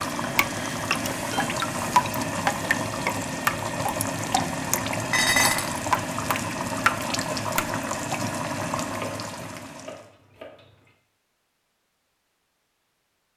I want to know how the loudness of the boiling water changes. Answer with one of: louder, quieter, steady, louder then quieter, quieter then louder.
steady.